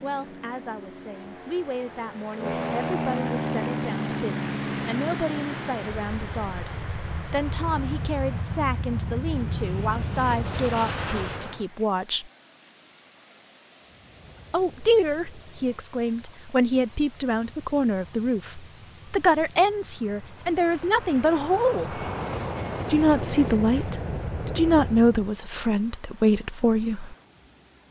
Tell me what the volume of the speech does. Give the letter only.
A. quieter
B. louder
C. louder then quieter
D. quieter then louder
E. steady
B.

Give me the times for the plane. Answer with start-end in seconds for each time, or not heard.
0.0-11.7, 13.8-25.4.